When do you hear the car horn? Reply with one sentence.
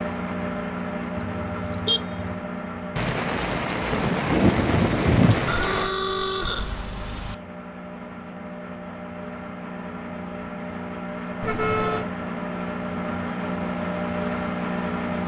The car horn can be heard from 1.1 to 2.4 s, from 5.5 to 7.3 s and from 11.4 to 12.1 s.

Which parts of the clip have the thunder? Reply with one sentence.
The thunder can be heard from 3.0 to 5.9 s.